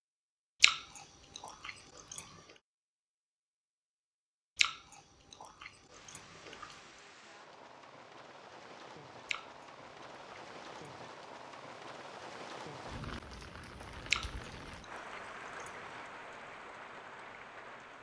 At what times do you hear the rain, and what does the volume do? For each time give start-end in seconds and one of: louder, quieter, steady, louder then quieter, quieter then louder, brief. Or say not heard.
5.8-17.9 louder.